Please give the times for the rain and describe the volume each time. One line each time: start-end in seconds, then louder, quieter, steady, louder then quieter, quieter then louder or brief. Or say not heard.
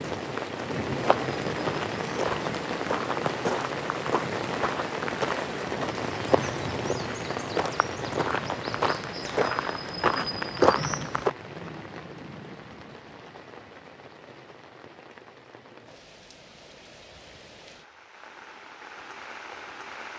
0.0-20.1 quieter.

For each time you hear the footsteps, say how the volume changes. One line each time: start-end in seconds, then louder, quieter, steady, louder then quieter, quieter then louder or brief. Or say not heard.
1.0-11.3 louder.